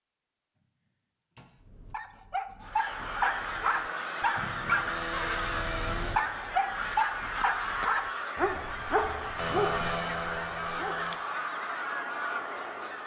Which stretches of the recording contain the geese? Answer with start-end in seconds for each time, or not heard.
2.6-13.0.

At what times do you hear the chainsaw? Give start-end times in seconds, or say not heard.
3.5-6.2, 9.3-11.2.